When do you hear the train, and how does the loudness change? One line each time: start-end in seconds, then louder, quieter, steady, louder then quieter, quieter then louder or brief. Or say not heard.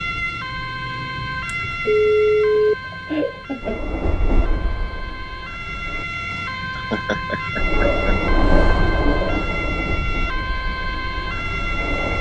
3.6-6.0 brief
7.5-12.1 quieter.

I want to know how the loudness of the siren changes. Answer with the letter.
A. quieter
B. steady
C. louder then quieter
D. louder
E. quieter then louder
E.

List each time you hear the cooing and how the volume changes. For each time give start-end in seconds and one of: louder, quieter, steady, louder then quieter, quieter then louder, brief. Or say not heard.
not heard.